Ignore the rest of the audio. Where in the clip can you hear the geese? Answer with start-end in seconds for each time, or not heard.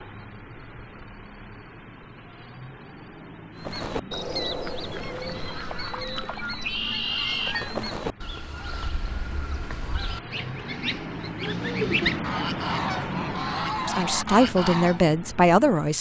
3.5-15.1.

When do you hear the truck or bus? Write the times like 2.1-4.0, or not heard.
0.0-15.9.